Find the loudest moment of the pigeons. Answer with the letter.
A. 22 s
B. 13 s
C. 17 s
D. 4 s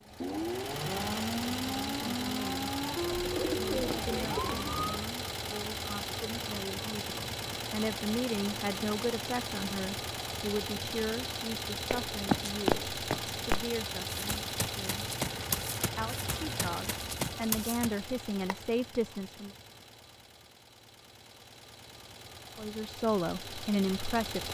D.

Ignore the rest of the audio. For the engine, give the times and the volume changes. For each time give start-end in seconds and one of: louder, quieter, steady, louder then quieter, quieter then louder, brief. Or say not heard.
0.0-24.4 quieter.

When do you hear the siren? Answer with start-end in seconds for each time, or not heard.
0.0-5.1.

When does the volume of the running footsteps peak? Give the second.
13 s.